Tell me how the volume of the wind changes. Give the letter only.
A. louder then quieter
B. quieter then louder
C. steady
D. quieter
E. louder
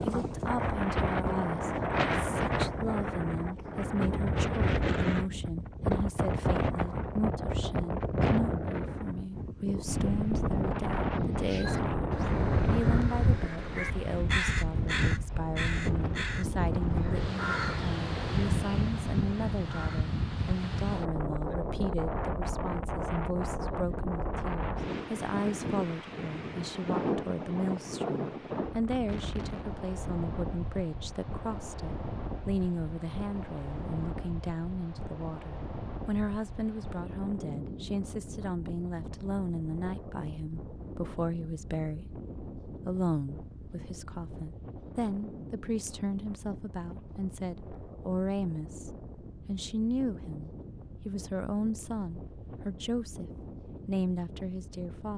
D.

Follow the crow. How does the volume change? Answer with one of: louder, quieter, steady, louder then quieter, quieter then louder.
quieter.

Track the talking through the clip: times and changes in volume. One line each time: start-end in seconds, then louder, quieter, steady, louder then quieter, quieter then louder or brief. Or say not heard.
0.1-55.1 steady.